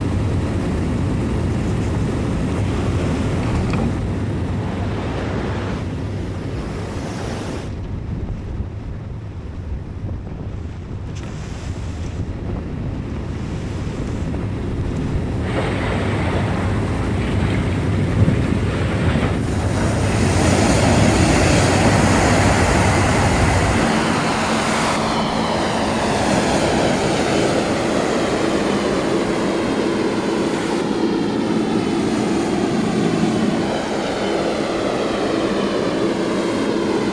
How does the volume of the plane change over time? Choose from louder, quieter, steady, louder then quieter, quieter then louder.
quieter then louder.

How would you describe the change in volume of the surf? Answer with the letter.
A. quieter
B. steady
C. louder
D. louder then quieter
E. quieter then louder
D.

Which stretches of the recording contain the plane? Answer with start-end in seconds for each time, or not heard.
0.0-37.0.